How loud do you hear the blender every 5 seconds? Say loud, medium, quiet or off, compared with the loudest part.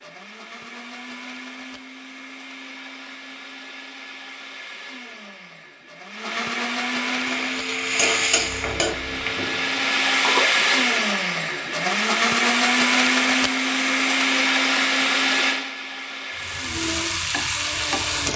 quiet, medium, loud, medium.